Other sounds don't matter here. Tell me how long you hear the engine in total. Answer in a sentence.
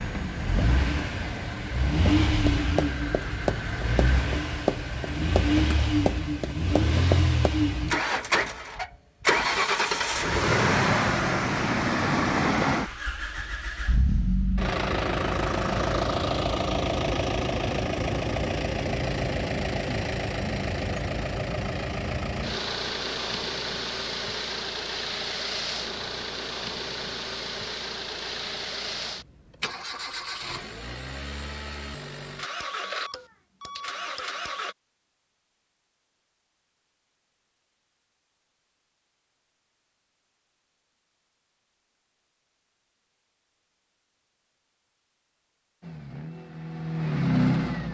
The engine can be heard for 37 seconds in total.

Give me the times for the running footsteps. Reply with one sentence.
You can hear the running footsteps from 2.5 to 7.5 s.